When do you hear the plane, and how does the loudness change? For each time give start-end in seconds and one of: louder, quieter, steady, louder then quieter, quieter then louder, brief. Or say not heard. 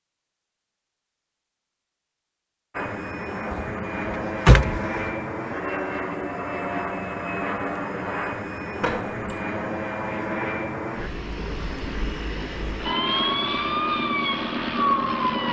2.7-15.4 steady.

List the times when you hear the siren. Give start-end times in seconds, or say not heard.
12.8-15.4.